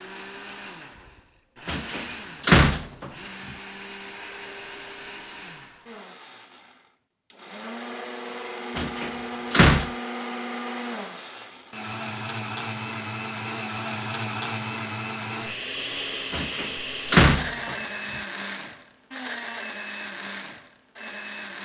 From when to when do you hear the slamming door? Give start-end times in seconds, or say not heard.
1.6-3.1, 8.8-9.9, 16.3-17.8.